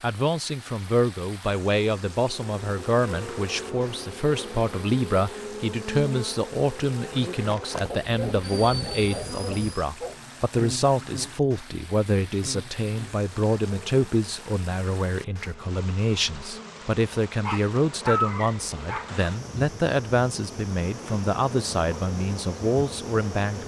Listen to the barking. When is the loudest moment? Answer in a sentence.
The volume of the barking peaks at 18 seconds.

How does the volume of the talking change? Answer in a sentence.
The volume of the talking stays about the same.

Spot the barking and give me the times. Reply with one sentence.
You can hear the barking from 7.8 to 10.2 s and from 17.4 to 19.1 s.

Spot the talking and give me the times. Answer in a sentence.
You can hear the talking from 0.0 to 23.6 s.